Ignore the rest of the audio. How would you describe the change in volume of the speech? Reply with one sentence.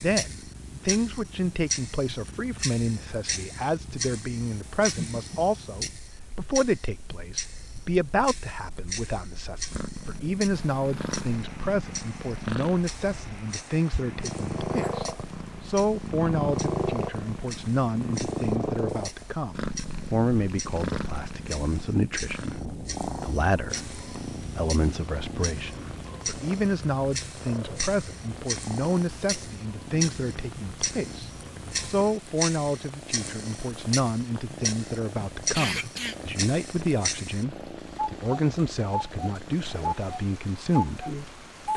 The volume of the speech stays about the same.